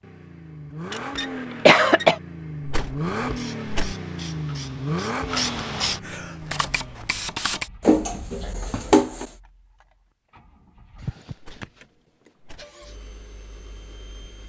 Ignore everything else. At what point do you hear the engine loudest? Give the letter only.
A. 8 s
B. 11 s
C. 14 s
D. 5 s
D.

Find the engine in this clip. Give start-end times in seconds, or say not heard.
0.0-14.4.